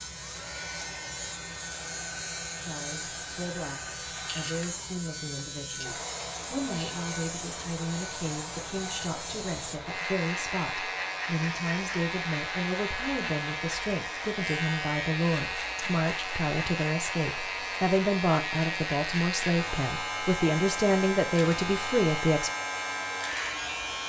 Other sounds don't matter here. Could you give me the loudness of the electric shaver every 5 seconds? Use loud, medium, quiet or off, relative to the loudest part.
medium, medium, loud, loud, loud.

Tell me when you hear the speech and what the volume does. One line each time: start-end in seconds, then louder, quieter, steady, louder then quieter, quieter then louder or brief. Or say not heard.
2.6-22.5 louder.